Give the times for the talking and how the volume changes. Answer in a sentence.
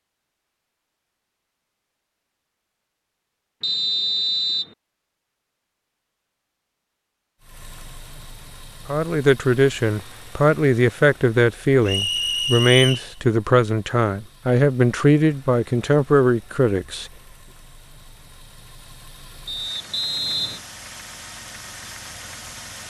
You can hear the talking from 8.8 to 17.1 s, at a steady volume.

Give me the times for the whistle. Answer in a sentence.
The whistle can be heard from 3.6 to 4.8 s, from 11.8 to 13.1 s and from 19.4 to 20.6 s.